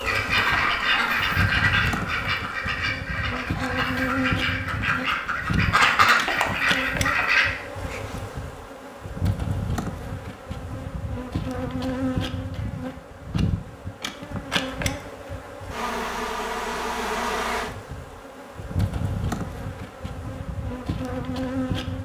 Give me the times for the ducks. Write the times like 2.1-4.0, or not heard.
0.0-7.5.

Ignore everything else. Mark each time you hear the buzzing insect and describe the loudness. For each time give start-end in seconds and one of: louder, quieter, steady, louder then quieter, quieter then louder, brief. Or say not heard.
0.0-22.0 steady.